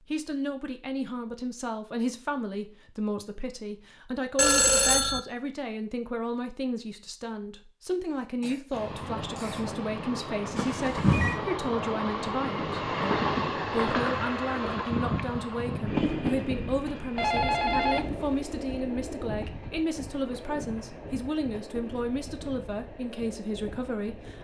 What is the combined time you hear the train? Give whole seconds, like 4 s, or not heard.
16 s.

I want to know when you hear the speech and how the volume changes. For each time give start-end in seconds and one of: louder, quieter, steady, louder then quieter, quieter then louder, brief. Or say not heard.
0.1-24.4 steady.